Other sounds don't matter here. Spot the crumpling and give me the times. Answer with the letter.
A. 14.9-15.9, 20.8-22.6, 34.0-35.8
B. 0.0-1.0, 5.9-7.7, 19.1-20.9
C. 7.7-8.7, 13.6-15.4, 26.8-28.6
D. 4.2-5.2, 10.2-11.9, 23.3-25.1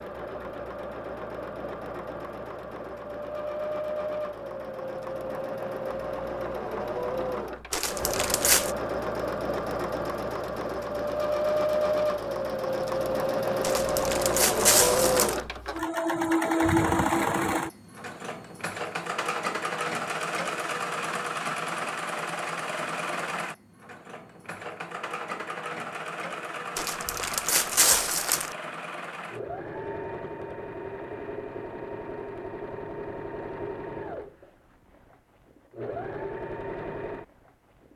C.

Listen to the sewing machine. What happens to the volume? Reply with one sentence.
The volume of the sewing machine goes up, then down.